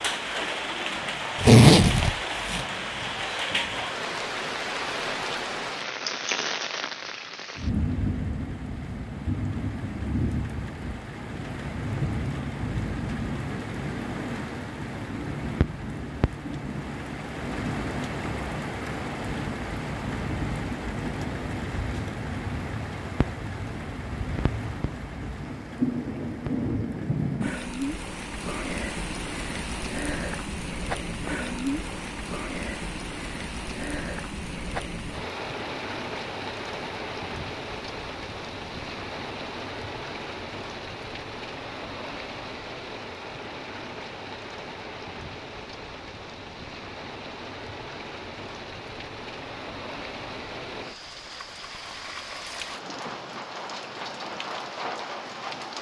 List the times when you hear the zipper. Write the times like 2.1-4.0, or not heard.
1.4-2.6.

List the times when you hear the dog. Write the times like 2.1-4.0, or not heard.
not heard.